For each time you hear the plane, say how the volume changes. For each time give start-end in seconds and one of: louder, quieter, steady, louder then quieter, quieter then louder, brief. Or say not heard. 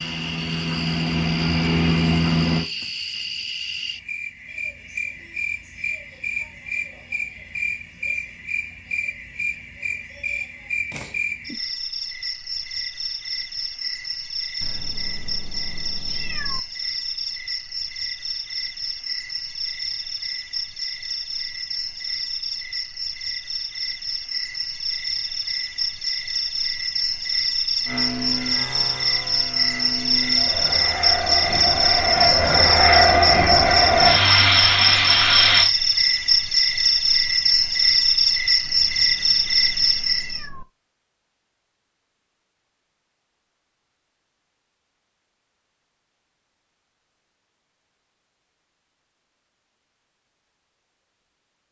0.0-2.6 brief
27.9-35.7 louder.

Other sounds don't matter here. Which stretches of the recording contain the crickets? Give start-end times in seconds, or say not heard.
0.0-40.5.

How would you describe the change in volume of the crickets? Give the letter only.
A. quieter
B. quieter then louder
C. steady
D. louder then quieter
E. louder
E.